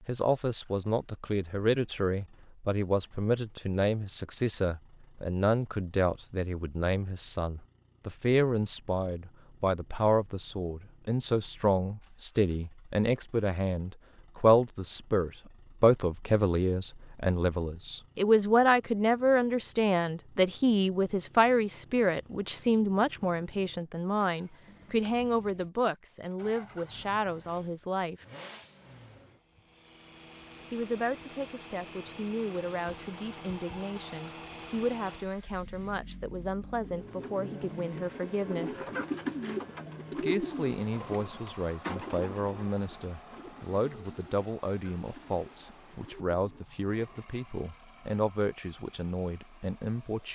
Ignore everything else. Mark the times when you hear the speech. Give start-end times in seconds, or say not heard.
0.1-28.2, 30.7-38.9, 40.1-50.2.